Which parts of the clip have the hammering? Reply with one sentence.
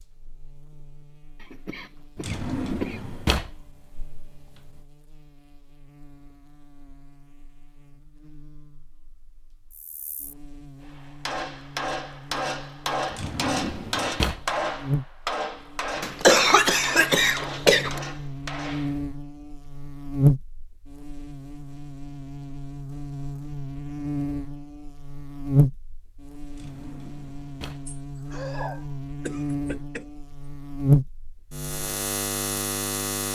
You can hear the hammering from 10.8 to 19.0 s.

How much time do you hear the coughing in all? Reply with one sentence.
The coughing can be heard for 6 seconds in total.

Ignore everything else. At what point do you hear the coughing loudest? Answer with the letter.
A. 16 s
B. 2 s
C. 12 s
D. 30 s
A.